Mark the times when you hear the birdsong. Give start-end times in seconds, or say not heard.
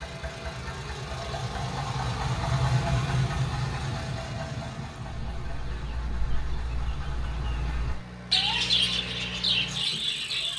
5.0-10.5.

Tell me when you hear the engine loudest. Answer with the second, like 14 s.
3 s.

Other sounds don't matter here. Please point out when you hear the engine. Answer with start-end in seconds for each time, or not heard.
0.0-10.5.